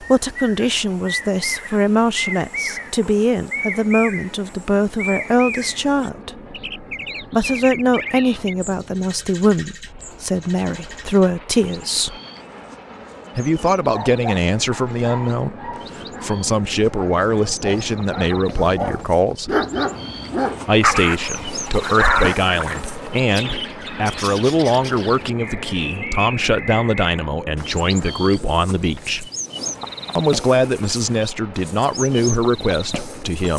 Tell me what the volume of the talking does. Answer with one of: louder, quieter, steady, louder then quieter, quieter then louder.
steady.